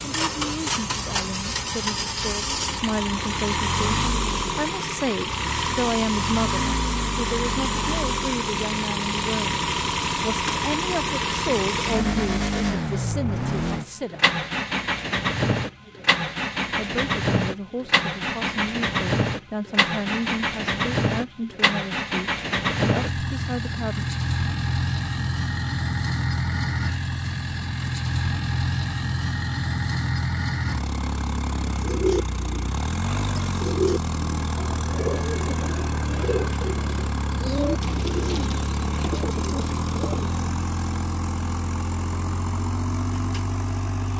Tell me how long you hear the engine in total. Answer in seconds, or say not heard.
44 s.